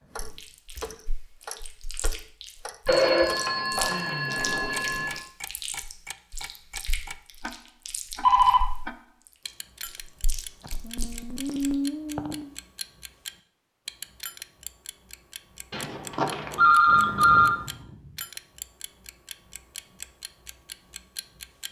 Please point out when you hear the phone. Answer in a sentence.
The phone can be heard from 2.9 to 5.2 s, from 8.2 to 8.7 s and from 15.7 to 17.5 s.